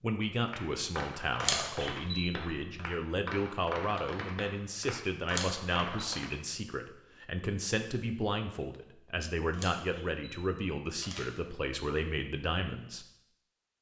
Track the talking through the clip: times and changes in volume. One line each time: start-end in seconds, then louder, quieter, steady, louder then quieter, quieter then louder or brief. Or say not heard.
0.0-13.1 steady.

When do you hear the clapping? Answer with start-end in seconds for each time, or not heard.
0.5-6.3.